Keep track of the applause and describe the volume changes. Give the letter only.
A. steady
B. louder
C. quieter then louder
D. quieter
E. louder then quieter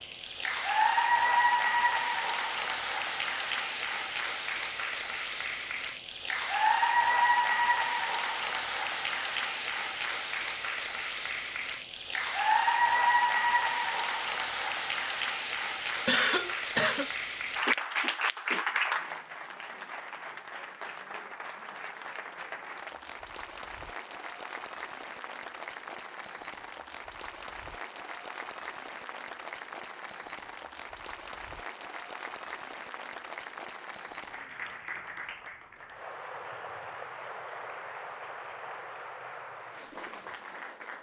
D.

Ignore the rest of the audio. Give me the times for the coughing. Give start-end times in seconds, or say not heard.
15.8-17.1.